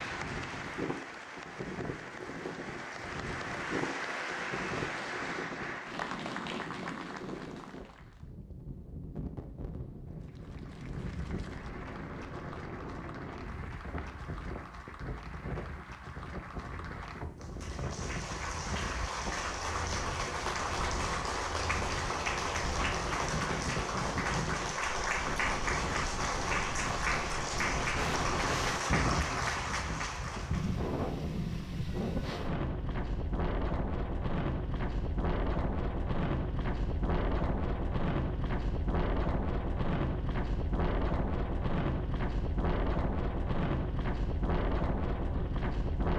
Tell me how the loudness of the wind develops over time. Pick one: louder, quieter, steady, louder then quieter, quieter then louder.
louder.